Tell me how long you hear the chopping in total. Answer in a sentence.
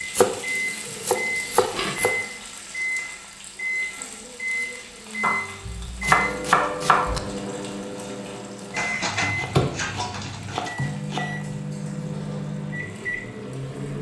The chopping can be heard for 6 seconds in total.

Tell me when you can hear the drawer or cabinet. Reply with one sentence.
You can't hear the drawer or cabinet here.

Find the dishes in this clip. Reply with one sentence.
You can hear the dishes from 1.3 to 2.2 s and from 8.7 to 10.8 s.